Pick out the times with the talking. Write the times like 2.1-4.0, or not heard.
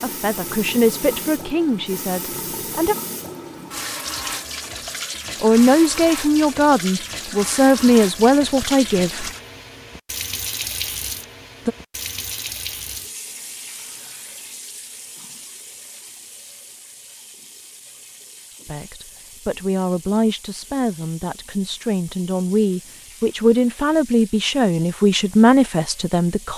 0.0-3.0, 5.4-9.3, 18.6-26.5.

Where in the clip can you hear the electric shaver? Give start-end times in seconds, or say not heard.
not heard.